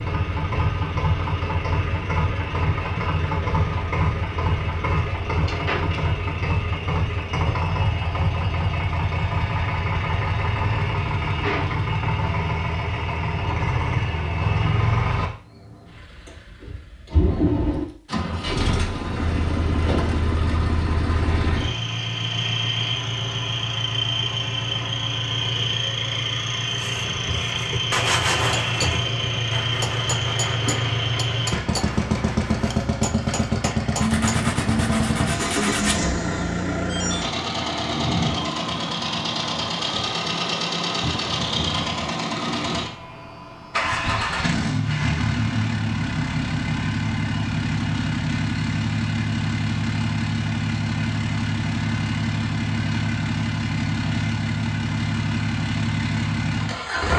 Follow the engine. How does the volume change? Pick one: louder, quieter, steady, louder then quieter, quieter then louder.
steady.